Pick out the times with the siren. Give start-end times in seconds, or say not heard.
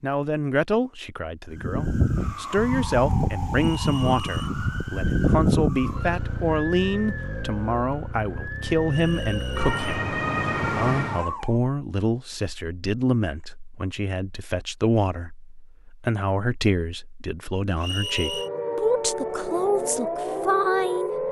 1.5-11.6, 17.9-21.2.